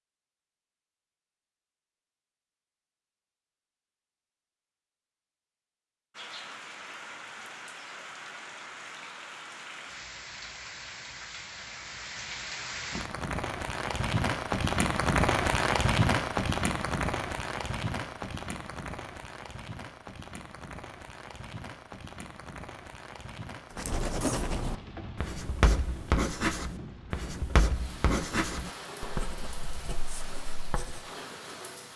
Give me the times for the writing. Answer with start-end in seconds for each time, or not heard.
23.8-31.1.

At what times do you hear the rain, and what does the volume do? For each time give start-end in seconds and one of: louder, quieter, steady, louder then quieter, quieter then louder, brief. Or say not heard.
6.1-31.9 louder then quieter.